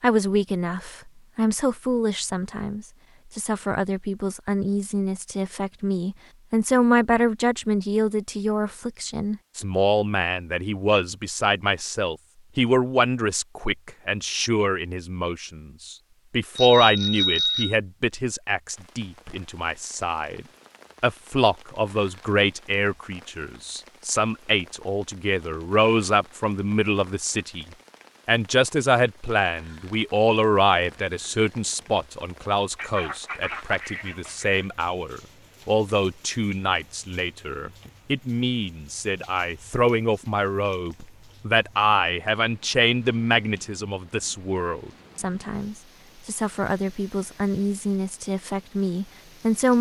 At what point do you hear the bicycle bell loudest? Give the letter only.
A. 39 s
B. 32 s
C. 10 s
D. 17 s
D.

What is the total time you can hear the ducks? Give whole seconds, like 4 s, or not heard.
2 s.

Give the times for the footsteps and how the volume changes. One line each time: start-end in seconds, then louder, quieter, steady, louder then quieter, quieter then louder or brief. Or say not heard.
not heard.